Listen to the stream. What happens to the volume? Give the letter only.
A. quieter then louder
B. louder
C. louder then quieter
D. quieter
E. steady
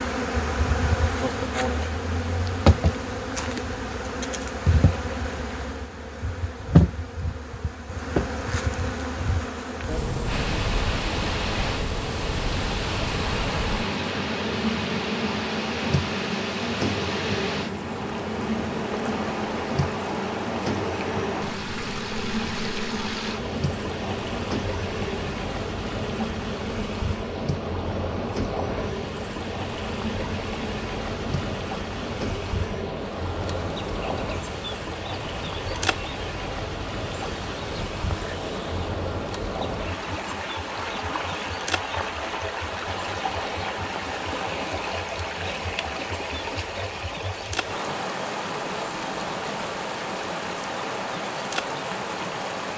E.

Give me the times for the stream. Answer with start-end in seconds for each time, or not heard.
10.2-52.7.